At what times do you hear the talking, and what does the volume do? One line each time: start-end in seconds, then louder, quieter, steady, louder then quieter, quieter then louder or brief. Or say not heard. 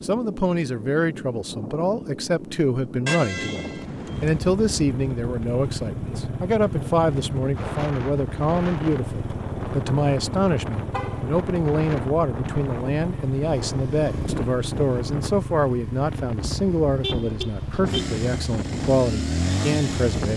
0.0-20.3 steady.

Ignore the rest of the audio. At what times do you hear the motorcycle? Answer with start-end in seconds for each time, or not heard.
4.2-20.3.